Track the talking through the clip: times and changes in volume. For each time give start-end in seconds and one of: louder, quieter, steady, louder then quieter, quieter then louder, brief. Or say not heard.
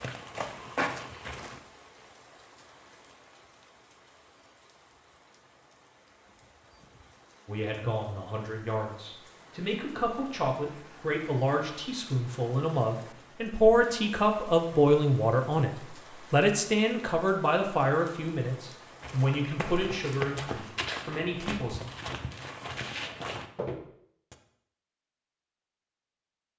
7.5-21.8 louder then quieter.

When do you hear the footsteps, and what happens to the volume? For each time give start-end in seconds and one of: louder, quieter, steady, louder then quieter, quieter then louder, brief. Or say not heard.
0.0-1.6 brief
19.0-24.4 steady.